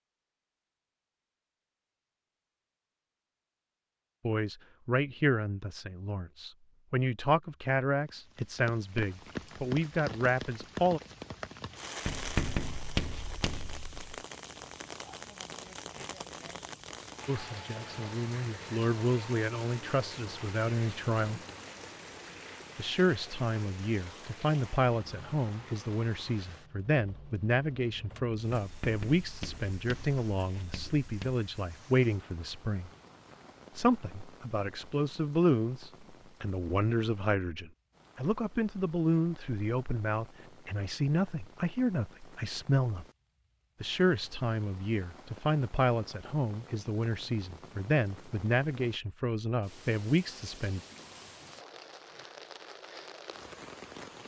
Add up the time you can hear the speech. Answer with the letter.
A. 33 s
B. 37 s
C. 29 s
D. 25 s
B.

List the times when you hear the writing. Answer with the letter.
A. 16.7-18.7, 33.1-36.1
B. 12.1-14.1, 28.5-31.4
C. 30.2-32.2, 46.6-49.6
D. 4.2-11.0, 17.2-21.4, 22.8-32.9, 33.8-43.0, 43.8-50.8
B.